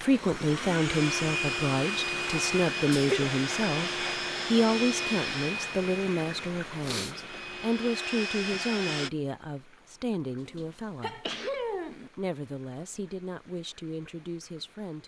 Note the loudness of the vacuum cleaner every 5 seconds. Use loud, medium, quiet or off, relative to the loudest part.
loud, loud, off.